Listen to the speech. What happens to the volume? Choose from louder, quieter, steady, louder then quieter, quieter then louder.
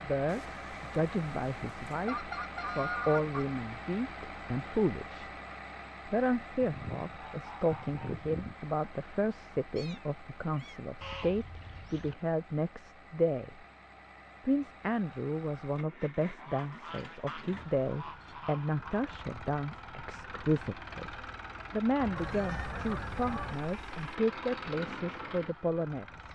steady.